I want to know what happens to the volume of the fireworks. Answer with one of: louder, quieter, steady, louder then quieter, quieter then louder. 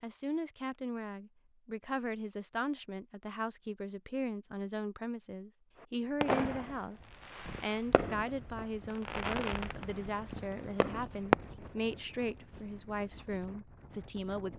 louder.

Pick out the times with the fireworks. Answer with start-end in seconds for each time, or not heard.
6.2-11.3.